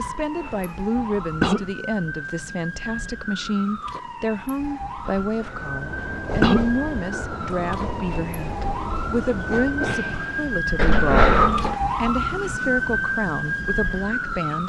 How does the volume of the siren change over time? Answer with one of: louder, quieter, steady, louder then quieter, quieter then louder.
louder.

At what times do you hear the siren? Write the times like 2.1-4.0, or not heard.
0.0-14.6.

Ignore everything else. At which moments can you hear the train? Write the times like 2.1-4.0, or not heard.
5.5-10.6.